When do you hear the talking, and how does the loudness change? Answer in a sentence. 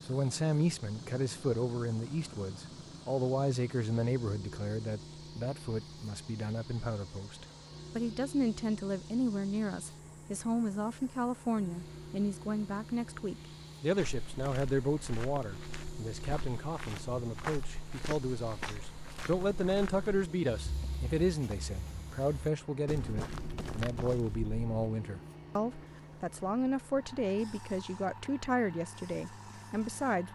You can hear the talking from 0.1 to 30.3 s, at a steady volume.